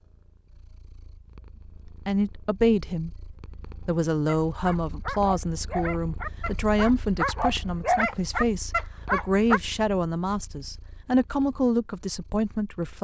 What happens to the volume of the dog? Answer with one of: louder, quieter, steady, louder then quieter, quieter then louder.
louder.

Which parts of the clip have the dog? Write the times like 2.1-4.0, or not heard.
4.2-9.6.